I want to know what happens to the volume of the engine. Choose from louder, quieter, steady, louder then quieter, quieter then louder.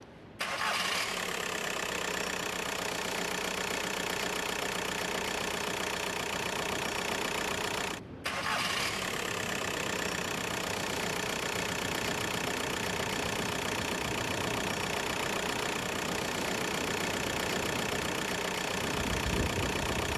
steady.